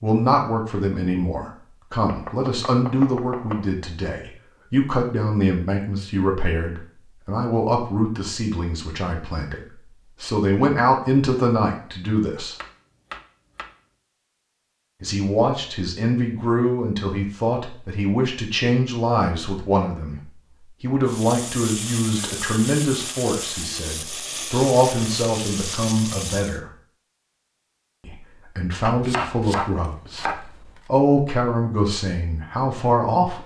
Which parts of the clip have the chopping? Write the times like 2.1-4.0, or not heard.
2.0-3.6, 12.6-13.7, 28.8-30.8.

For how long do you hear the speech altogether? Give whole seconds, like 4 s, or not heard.
29 s.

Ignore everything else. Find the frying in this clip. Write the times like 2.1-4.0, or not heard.
21.1-26.6.